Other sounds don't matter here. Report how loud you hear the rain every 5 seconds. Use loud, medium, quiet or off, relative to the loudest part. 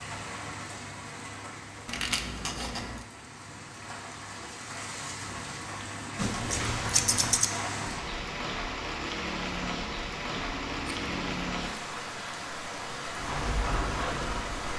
medium, loud, loud.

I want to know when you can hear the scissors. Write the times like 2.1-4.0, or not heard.
1.9-3.0, 6.2-7.5, 10.3-11.6.